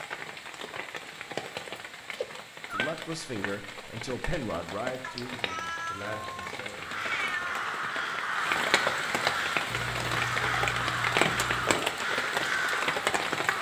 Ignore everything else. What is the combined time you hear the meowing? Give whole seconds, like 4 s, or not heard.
6 s.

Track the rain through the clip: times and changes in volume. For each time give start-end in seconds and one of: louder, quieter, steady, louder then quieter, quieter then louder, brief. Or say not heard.
0.0-13.5 louder.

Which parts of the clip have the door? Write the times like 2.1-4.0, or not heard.
not heard.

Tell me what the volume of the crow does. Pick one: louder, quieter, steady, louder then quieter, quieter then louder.
steady.